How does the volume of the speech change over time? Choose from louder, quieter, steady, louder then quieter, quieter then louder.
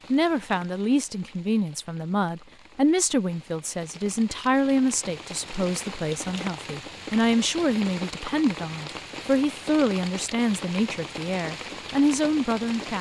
steady.